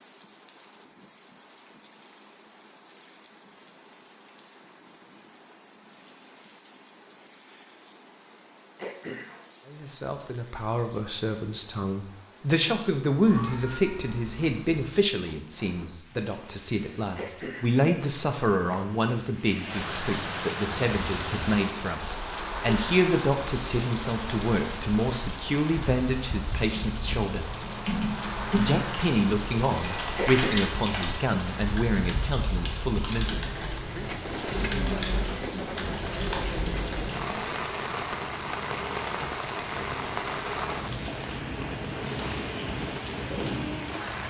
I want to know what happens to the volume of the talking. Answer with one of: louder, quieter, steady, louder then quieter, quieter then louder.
steady.